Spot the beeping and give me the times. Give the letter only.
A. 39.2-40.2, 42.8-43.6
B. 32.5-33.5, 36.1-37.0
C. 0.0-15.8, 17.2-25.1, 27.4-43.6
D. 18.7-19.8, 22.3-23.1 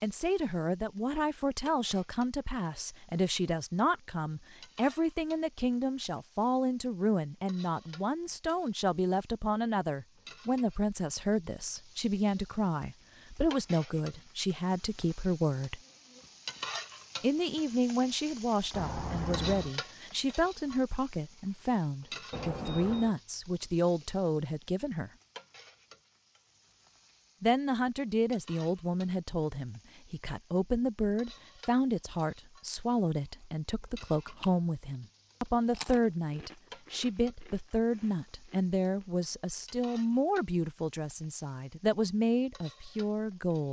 D.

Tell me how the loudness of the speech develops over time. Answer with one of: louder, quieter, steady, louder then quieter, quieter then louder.
steady.